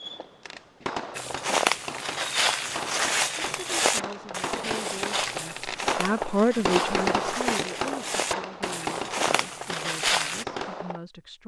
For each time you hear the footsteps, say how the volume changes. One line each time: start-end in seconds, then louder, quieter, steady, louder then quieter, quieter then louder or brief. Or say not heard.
1.1-10.4 quieter.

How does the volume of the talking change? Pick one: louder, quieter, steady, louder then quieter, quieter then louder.
louder then quieter.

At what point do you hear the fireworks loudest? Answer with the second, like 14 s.
7 s.